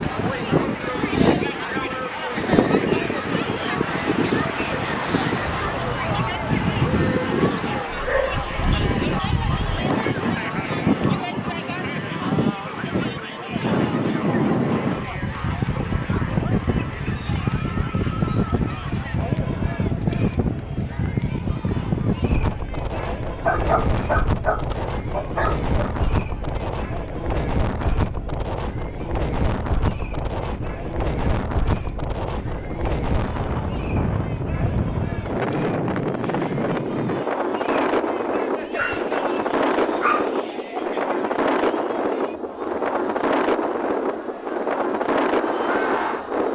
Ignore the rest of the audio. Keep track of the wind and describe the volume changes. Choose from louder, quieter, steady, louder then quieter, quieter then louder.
steady.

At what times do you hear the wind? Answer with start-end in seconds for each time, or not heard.
0.0-46.4.